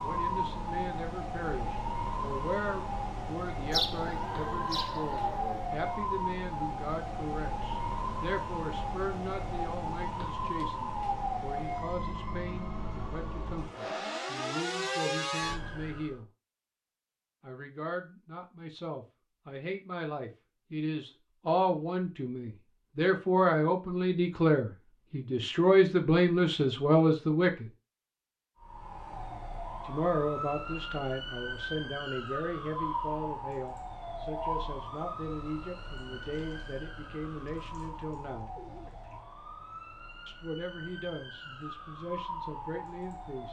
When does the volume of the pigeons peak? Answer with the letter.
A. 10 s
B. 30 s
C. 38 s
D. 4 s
D.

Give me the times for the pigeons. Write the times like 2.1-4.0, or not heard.
3.7-5.7, 37.5-39.2.